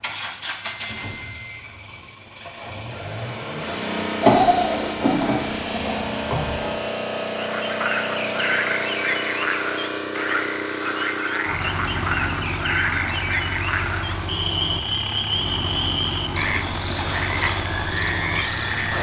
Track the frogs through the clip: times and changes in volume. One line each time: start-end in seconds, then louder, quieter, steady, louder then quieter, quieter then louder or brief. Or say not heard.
7.4-18.9 steady.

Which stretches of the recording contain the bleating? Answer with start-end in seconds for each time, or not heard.
4.2-6.8.